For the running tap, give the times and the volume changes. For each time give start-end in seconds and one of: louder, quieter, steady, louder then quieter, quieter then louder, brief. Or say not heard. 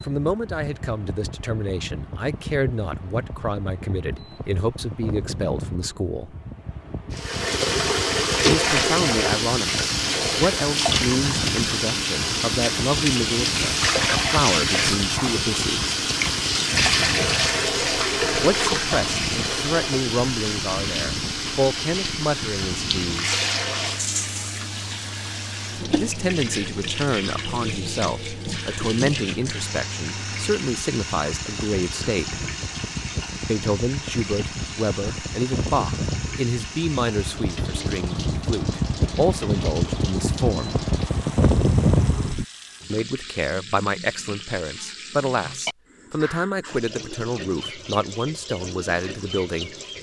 7.1-49.9 quieter.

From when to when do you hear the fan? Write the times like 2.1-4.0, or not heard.
0.0-42.5.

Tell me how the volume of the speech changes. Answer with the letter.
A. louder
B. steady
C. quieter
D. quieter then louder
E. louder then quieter
B.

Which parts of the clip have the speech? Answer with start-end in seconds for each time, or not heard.
0.0-6.3, 8.4-15.9, 18.4-23.4, 25.9-32.5, 33.4-40.8, 42.9-49.7.